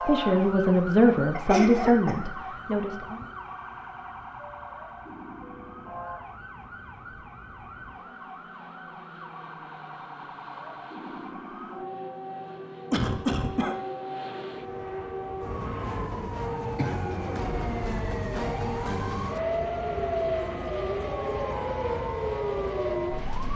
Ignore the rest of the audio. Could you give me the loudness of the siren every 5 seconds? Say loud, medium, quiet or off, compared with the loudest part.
medium, quiet, medium, loud, loud.